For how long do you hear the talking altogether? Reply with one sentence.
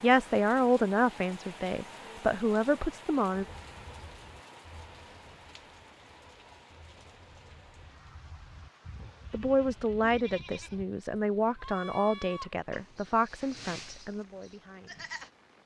You can hear the talking for 9 seconds altogether.